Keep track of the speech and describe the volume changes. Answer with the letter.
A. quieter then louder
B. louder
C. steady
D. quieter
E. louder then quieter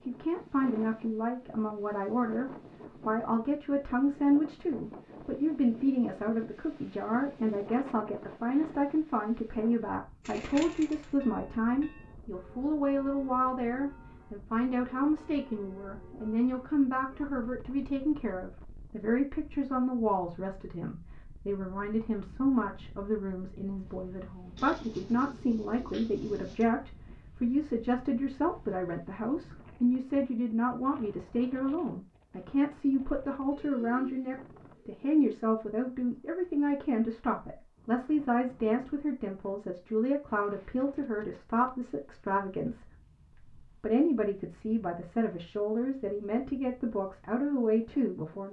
C.